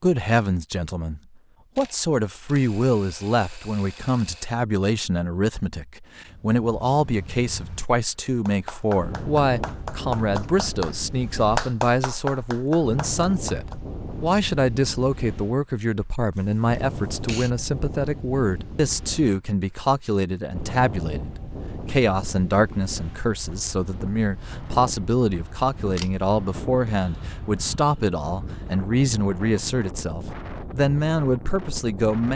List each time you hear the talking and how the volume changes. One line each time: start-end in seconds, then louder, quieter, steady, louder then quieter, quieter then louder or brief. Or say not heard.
0.0-32.3 steady.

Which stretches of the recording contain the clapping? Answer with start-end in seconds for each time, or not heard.
8.2-13.8.